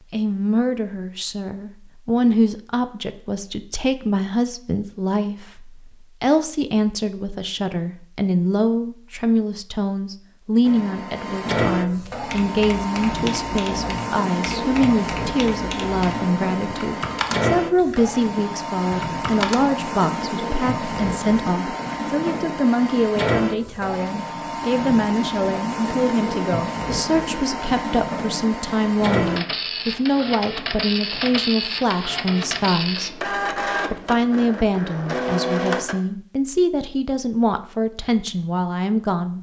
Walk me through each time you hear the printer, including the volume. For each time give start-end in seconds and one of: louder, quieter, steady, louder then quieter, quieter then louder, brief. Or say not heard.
10.6-36.0 steady.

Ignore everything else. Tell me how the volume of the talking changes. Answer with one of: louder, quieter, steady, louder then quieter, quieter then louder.
steady.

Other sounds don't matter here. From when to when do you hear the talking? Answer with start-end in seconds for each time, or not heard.
0.1-39.3.